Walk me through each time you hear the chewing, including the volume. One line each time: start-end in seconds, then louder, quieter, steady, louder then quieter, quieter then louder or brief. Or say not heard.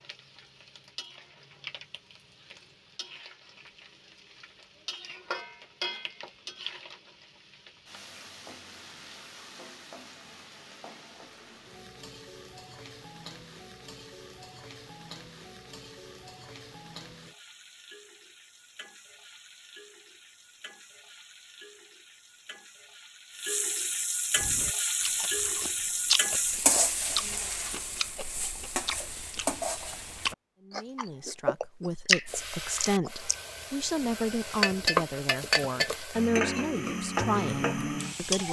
24.4-33.4 quieter then louder.